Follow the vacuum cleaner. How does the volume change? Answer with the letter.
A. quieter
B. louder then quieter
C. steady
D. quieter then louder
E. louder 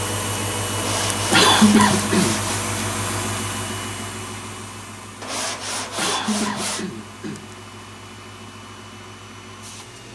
A.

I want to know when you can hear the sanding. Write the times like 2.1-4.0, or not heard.
0.8-2.6, 5.2-6.8.